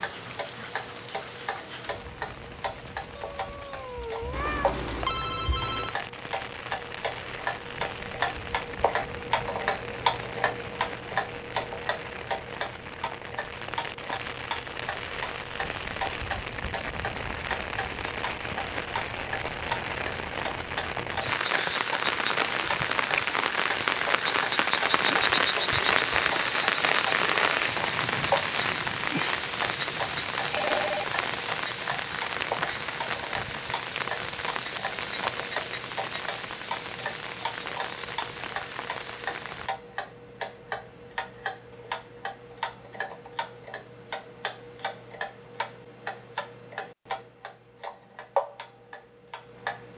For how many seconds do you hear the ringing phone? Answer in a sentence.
The ringing phone can be heard for 2 seconds in total.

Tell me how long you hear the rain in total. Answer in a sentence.
You can hear the rain for 40 seconds altogether.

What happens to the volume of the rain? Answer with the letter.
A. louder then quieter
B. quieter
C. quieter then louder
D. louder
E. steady
A.